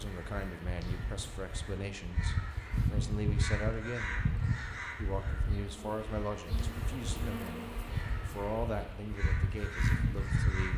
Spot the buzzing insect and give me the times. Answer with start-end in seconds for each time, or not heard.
0.0-10.7.